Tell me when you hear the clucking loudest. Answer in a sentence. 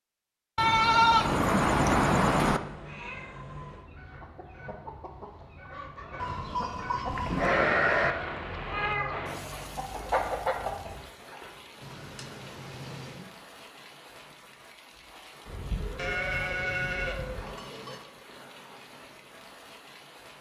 The loudest moment of the clucking is at 10 seconds.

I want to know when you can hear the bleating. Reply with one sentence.
The bleating can be heard from 0.6 to 2.6 s, from 6.2 to 8.2 s, from 11.8 to 13.3 s and from 15.9 to 18.0 s.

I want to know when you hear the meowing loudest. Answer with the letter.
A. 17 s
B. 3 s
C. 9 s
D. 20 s
C.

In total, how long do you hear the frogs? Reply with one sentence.
You can't hear the frogs here.